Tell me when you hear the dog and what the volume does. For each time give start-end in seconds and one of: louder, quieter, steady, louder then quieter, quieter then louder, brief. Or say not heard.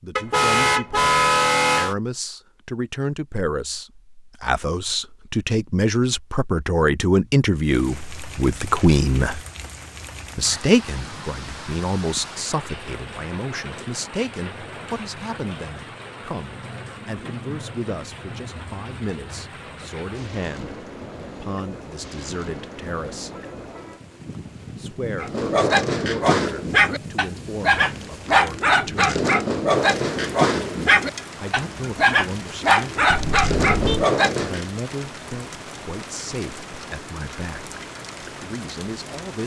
25.2-34.6 steady.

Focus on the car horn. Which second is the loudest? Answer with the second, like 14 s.
1 s.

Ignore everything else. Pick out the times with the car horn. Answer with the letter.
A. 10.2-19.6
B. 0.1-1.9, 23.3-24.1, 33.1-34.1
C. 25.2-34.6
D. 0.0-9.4
B.